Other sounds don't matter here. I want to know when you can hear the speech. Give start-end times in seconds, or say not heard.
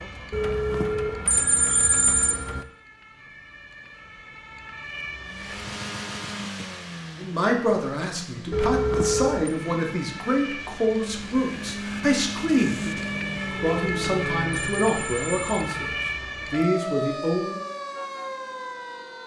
7.2-17.6.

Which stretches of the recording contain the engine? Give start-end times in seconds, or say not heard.
5.2-14.8.